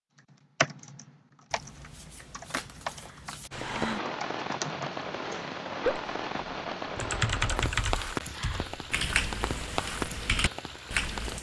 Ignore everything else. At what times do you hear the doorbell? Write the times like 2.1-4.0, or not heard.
not heard.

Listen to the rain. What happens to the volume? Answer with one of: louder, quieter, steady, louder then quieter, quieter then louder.
steady.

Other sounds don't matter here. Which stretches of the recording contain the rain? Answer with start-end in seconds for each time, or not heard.
3.5-11.3.